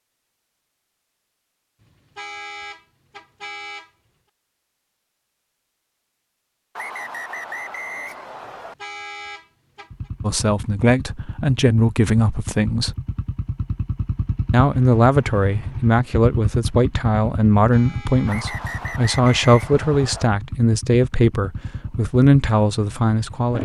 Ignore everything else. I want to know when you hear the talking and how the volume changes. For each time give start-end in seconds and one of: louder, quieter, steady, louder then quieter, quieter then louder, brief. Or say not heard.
10.2-12.9 brief
14.5-23.6 steady.